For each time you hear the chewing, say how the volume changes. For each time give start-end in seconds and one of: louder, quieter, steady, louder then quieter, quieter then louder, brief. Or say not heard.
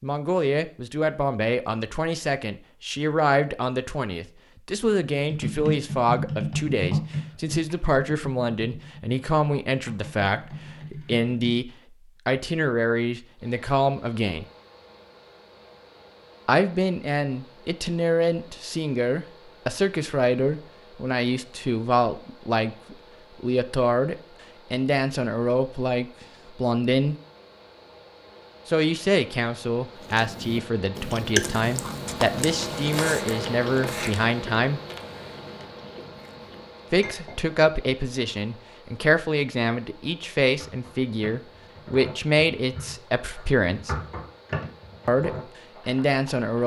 30.0-37.0 quieter.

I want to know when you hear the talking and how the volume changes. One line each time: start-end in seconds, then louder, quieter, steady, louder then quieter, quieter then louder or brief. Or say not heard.
0.0-14.4 steady
16.4-27.1 steady
28.6-34.8 steady
36.9-44.0 steady
45.0-46.6 brief.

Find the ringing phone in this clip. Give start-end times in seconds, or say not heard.
not heard.